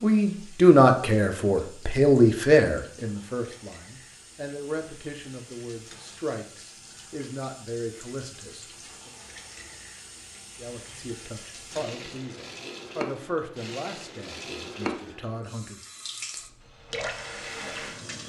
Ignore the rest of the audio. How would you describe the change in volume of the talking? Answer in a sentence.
The loudness of the talking goes down.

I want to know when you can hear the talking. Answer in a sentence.
You can hear the talking from 0.0 to 9.1 s and from 10.6 to 15.8 s.